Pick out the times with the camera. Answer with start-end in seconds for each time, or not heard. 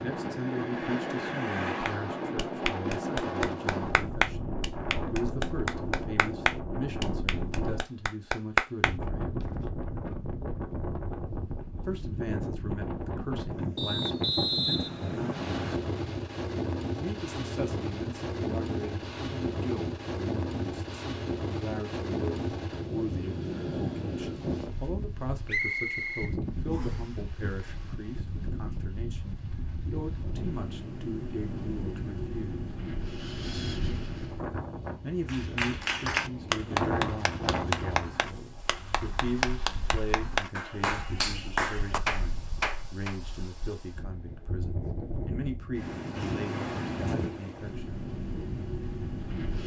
not heard.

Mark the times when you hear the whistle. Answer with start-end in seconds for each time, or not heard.
13.8-15.8, 25.4-27.1.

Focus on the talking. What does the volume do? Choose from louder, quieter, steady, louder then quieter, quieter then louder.
steady.